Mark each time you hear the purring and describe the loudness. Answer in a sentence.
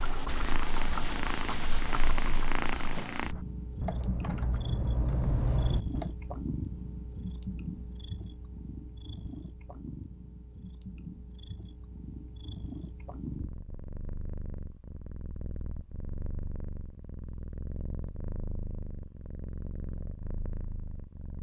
You can hear the purring from 0.0 to 21.3 s, getting quieter.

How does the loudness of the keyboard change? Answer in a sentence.
The loudness of the keyboard goes down, then up.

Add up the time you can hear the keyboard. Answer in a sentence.
You can hear the keyboard for 6 seconds altogether.